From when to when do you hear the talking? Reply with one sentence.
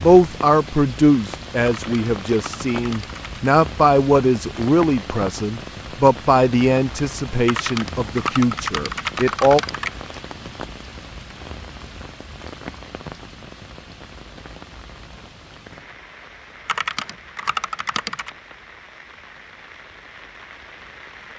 The talking can be heard from 0.0 to 9.6 s.